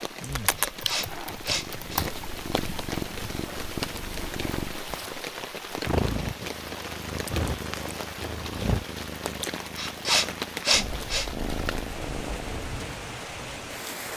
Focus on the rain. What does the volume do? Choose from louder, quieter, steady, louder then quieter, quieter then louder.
steady.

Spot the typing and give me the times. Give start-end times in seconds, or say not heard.
0.5-2.2.